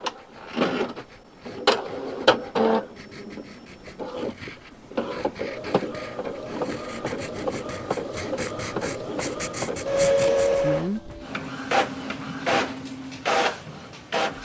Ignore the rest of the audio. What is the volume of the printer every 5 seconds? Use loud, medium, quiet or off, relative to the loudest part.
loud, medium, loud.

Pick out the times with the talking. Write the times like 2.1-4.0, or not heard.
10.6-11.1.